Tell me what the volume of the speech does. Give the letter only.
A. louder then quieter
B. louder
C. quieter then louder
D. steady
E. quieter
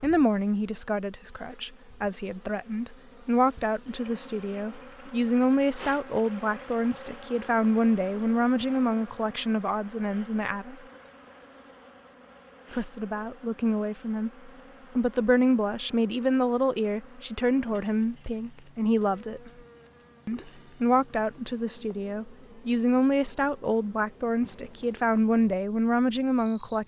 D.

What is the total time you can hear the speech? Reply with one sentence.
You can hear the speech for 24 seconds altogether.